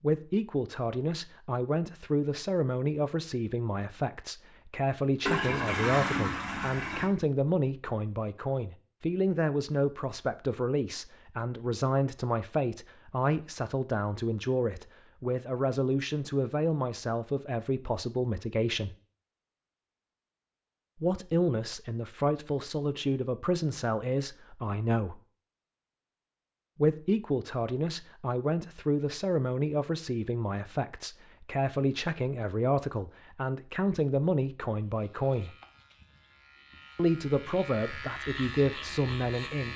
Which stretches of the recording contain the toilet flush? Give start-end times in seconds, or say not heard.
5.2-7.1.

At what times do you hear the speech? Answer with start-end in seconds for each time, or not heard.
0.0-18.9, 20.9-25.2, 26.8-35.5, 37.0-39.7.